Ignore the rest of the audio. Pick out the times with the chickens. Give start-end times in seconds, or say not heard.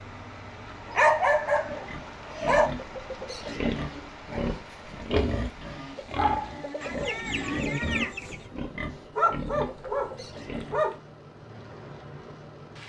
6.8-8.5.